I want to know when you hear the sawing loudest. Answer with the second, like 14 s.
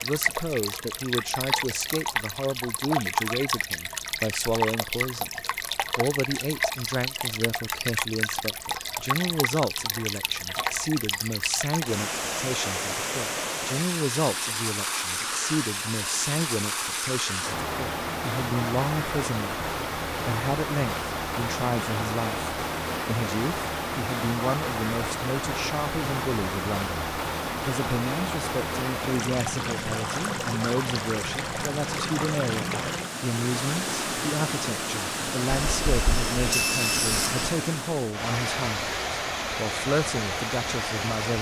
37 s.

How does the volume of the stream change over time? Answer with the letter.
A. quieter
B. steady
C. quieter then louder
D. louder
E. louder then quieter
B.